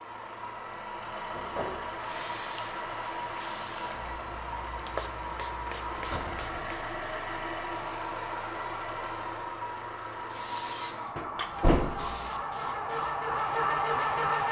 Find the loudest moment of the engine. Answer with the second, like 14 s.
14 s.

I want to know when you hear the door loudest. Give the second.
12 s.